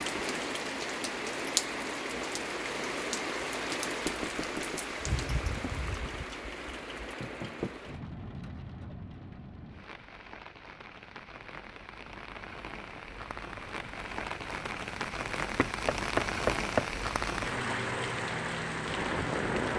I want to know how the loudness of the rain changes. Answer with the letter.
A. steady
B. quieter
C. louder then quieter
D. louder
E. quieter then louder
E.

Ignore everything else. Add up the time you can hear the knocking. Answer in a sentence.
The knocking can be heard for 3 seconds in total.